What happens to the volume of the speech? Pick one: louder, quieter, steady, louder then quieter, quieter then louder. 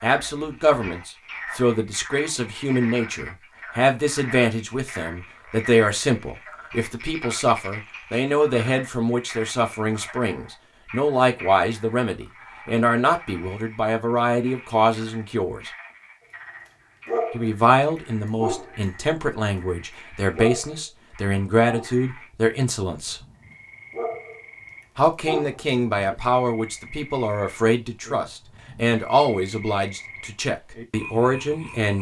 steady.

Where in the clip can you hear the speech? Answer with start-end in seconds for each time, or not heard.
0.0-15.7, 17.3-23.2, 24.9-31.9.